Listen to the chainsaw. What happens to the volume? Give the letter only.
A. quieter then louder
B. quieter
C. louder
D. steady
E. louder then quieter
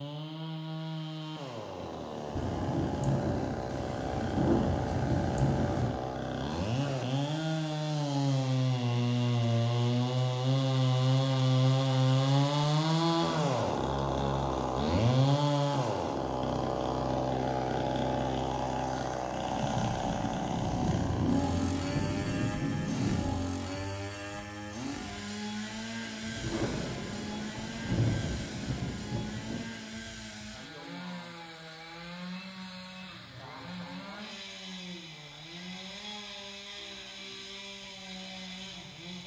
E.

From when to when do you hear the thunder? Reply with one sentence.
The thunder can be heard from 2.4 to 5.9 s, from 19.5 to 23.4 s and from 26.2 to 29.7 s.